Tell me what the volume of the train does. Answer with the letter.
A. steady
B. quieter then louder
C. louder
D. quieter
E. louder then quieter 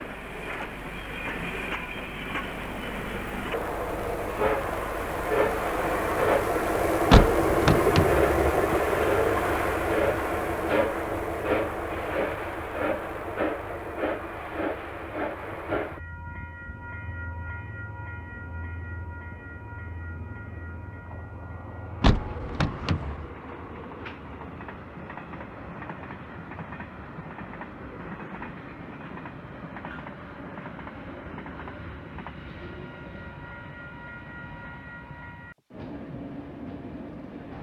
D.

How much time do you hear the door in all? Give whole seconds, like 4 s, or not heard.
3 s.